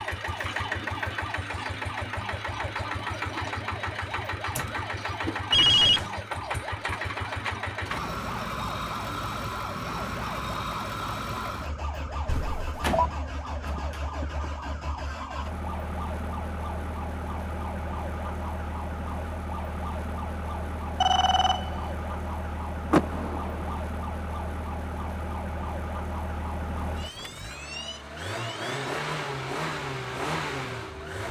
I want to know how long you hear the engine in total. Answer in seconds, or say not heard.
31 s.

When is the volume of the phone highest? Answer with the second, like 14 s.
6 s.